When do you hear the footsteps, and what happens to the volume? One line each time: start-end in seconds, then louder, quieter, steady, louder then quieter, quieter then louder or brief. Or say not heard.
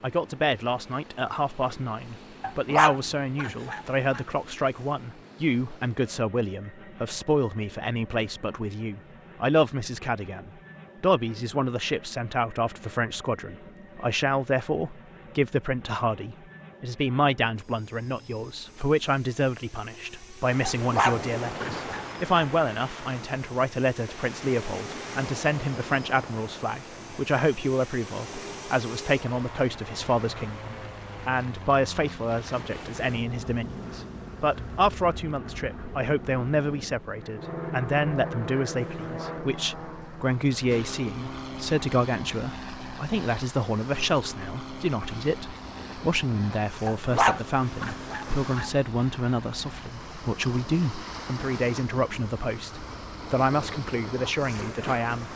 not heard.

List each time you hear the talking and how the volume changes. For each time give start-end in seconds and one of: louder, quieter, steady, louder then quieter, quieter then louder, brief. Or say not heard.
0.0-55.3 steady.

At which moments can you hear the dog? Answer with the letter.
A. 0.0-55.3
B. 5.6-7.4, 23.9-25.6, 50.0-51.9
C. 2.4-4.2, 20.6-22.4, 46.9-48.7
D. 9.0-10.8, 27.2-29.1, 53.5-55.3
C.